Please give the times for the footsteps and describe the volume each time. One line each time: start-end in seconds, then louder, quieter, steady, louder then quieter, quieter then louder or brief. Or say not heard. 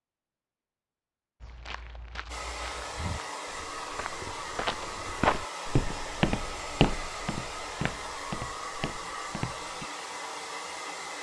1.4-9.8 louder then quieter.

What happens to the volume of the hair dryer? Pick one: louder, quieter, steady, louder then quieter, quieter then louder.
steady.